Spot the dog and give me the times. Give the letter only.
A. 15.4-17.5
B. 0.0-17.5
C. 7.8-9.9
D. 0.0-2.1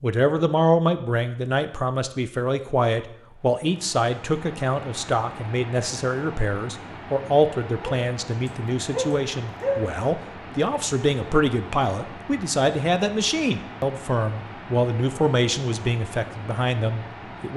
C.